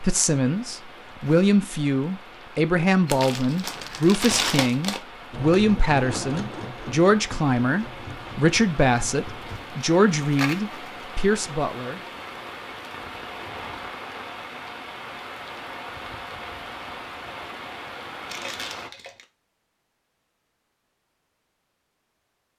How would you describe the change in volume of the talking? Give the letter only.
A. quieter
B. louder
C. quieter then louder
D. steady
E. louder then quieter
D.